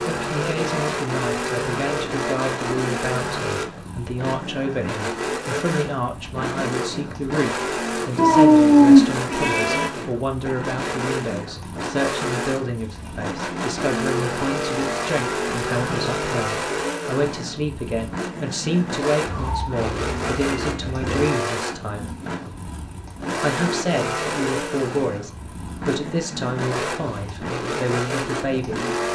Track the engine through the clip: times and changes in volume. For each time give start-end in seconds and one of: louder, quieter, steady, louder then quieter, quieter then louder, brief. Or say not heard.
0.0-29.1 steady.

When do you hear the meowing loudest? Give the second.
9 s.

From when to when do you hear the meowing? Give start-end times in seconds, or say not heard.
8.2-9.8, 19.2-21.0.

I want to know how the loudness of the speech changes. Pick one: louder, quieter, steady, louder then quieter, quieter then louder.
steady.